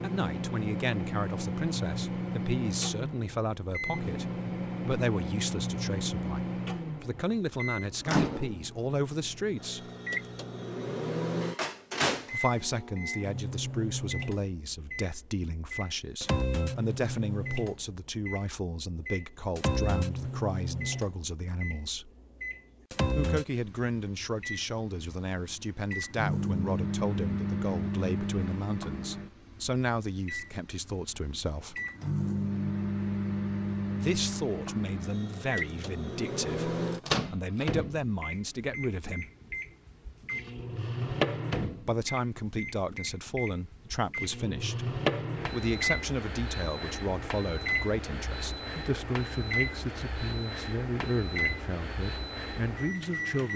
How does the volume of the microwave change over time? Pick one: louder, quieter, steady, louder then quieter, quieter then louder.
steady.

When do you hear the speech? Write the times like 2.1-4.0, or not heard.
0.0-9.9, 12.3-22.1, 23.1-31.8, 34.0-39.2, 41.8-53.5.